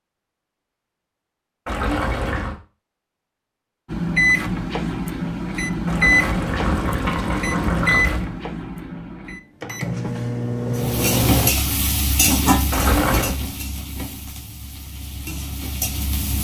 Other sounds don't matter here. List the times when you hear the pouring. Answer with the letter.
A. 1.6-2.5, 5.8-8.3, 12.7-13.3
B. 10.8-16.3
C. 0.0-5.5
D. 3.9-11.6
A.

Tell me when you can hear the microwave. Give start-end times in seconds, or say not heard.
3.9-11.6.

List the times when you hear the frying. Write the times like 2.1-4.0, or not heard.
10.8-16.3.